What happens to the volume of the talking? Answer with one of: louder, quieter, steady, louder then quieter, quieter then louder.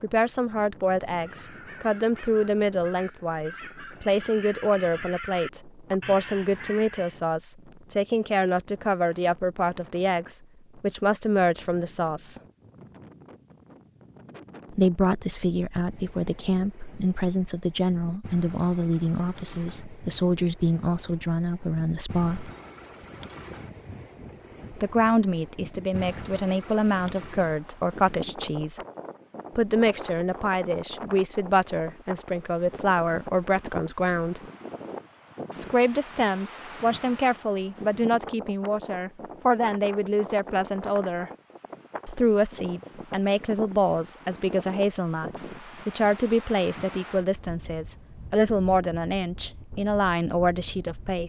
steady.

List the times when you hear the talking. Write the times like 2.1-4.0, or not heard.
0.0-12.4, 14.7-22.5, 24.7-28.8, 29.6-34.4, 35.5-41.3, 42.0-51.2.